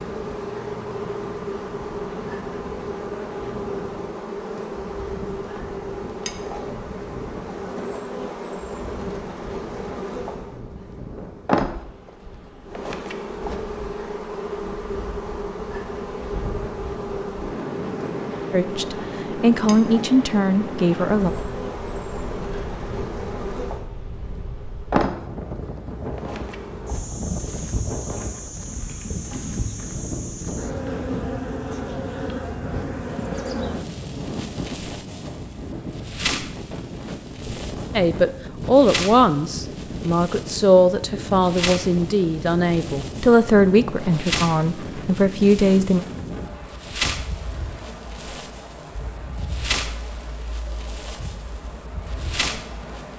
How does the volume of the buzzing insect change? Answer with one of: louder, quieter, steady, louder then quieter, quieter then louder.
steady.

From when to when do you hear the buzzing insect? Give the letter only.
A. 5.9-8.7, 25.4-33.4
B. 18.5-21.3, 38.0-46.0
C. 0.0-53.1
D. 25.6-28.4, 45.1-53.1
C.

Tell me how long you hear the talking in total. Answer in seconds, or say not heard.
11 s.